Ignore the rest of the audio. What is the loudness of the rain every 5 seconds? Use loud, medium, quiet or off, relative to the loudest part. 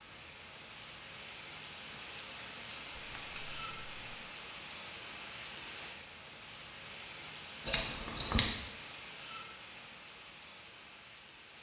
loud, loud, medium.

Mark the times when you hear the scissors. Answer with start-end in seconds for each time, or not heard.
3.0-4.1, 7.7-8.5.